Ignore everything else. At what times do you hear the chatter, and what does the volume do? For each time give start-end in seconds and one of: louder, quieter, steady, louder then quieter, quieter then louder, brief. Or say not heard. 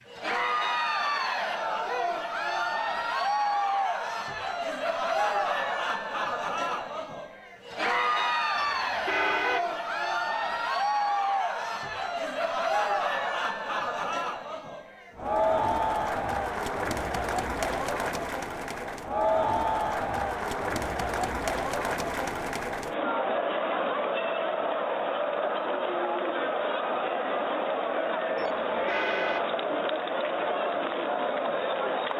0.1-32.1 steady.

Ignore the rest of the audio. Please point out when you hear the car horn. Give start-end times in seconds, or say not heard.
8.6-9.7, 28.4-29.4.